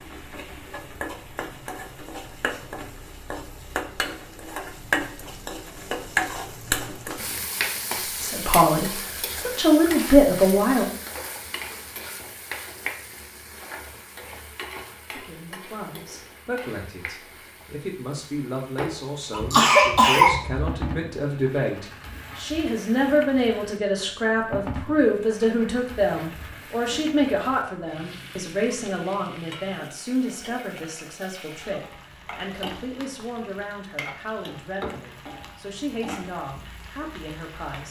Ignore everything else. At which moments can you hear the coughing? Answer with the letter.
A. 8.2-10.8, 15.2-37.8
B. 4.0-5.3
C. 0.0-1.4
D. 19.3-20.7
D.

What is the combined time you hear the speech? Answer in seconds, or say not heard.
25 s.